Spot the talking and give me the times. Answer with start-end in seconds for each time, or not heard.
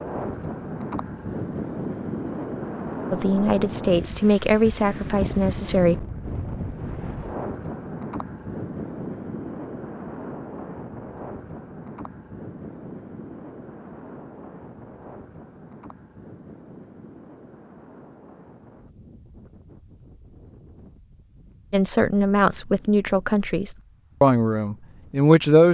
3.1-6.0, 21.7-25.6.